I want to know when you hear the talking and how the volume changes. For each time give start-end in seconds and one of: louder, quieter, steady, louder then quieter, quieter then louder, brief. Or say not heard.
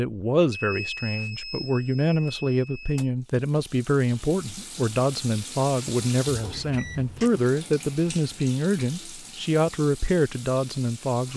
0.0-11.3 steady.